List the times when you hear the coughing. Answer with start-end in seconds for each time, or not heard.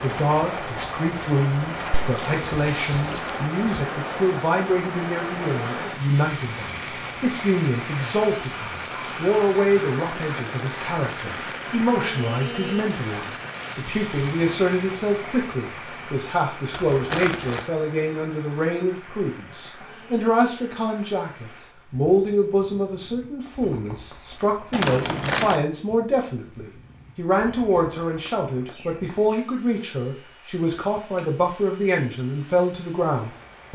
not heard.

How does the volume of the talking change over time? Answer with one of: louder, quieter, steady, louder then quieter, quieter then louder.
steady.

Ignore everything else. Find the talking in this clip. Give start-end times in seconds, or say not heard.
0.0-33.7.